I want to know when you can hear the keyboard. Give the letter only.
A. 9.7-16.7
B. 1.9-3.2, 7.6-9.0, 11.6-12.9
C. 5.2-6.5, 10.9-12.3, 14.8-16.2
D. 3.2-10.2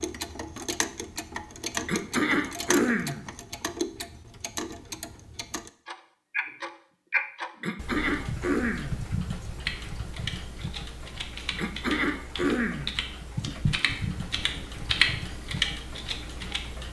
A.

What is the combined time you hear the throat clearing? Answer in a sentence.
You can hear the throat clearing for 4 seconds altogether.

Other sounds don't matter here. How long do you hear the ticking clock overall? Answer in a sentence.
You can hear the ticking clock for 17 seconds altogether.